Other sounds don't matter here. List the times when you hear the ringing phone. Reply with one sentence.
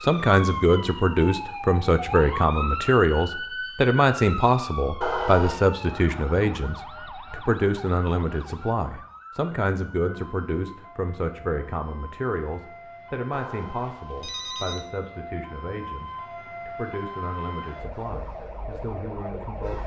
You can hear the ringing phone from 5.0 to 5.6 s and from 13.3 to 14.8 s.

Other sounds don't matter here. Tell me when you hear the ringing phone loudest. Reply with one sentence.
The volume of the ringing phone peaks at 5 seconds.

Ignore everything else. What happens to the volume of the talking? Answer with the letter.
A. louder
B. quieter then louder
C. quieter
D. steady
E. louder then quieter
C.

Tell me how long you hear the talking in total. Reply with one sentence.
The talking can be heard for 20 seconds in total.